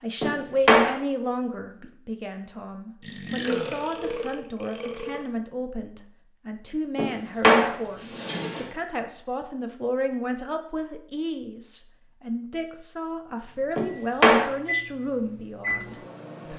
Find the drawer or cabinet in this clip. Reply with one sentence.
The drawer or cabinet can be heard from 0.2 to 0.9 s, from 7.0 to 8.7 s and from 13.8 to 14.4 s.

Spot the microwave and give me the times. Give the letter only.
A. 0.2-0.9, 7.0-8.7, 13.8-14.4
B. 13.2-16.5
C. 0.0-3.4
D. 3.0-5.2
B.